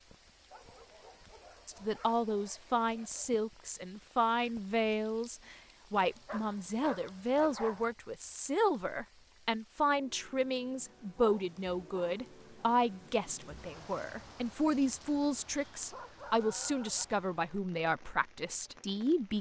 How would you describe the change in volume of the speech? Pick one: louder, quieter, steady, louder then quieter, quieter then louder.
steady.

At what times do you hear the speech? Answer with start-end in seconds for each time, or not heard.
1.6-19.3.